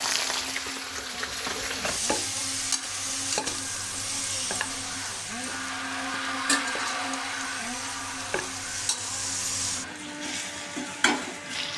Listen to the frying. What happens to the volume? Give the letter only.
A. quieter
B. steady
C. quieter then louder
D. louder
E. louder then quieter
C.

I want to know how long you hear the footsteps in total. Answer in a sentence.
The footsteps can't be heard in this clip.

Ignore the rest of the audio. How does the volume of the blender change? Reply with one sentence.
The volume of the blender goes up, then down.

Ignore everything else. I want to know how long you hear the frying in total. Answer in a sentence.
You can hear the frying for 12 seconds altogether.